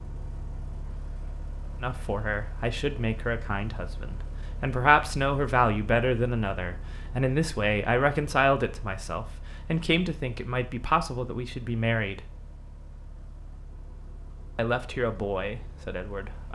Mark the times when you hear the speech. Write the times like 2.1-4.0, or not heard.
1.8-12.2, 14.6-16.4.